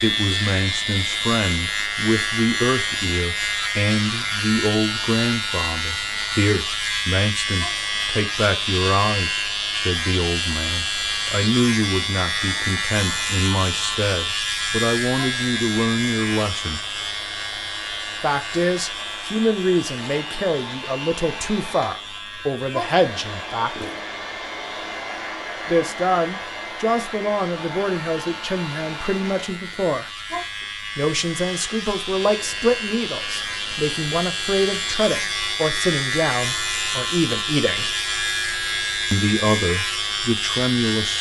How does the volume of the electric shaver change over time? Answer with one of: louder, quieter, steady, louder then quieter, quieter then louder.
quieter then louder.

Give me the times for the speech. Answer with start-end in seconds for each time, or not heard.
0.0-16.8, 18.2-23.9, 25.6-30.1, 30.9-37.9, 39.1-41.1.